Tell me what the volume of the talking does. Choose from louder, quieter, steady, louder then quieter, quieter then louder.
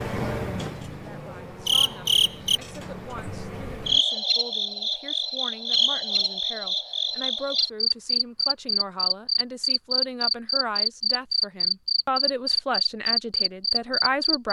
louder.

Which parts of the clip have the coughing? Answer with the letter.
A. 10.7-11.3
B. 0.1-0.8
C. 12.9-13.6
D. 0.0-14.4
B.